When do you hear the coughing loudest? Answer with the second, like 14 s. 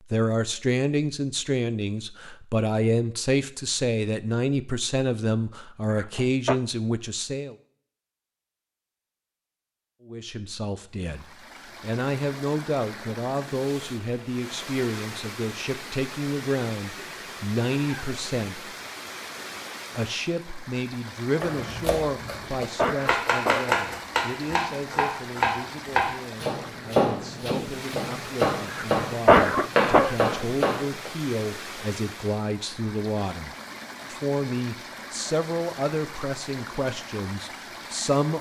29 s.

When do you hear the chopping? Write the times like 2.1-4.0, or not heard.
21.4-31.1.